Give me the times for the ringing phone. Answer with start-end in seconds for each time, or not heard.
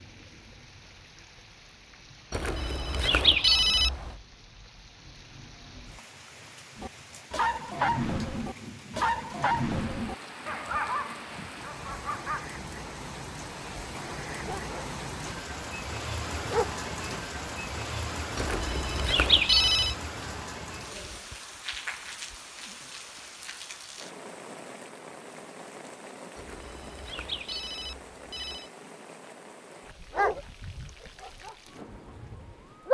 2.3-4.2, 18.4-19.9, 26.4-28.7.